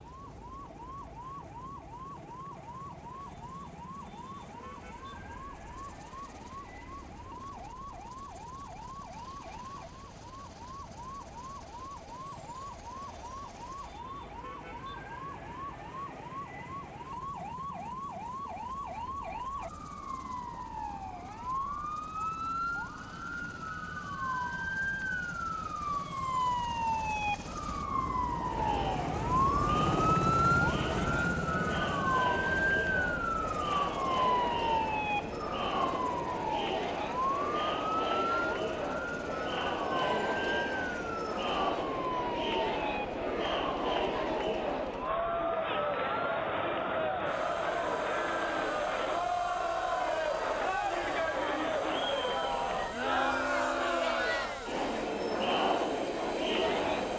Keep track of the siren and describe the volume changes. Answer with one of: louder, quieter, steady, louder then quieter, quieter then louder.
louder then quieter.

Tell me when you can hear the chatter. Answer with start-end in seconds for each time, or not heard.
28.4-57.1.